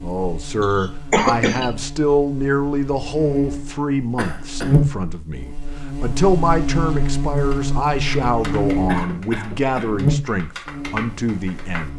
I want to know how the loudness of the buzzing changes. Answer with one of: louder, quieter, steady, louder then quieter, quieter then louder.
louder.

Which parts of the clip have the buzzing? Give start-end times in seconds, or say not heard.
0.0-11.9.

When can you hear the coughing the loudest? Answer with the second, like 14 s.
1 s.